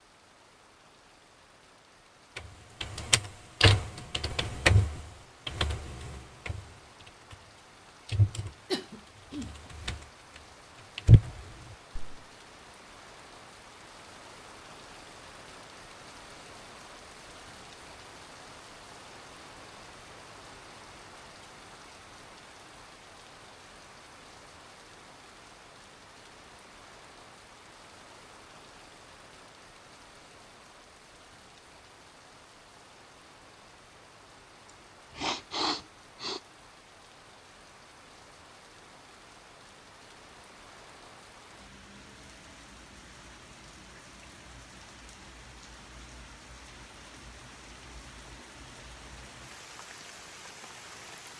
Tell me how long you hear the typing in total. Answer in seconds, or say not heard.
7 s.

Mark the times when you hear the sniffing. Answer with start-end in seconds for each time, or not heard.
8.7-9.5, 35.1-36.4.